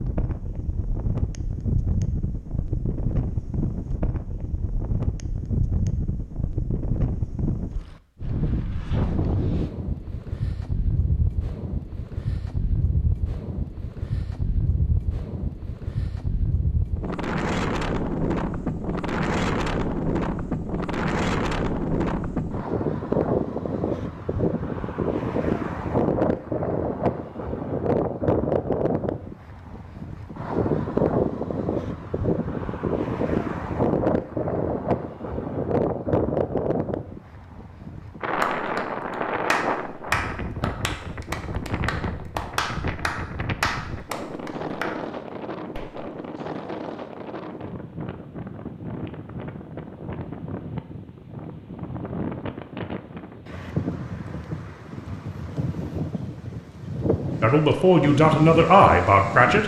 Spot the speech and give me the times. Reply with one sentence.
You can hear the speech from 57.4 to 59.6 s.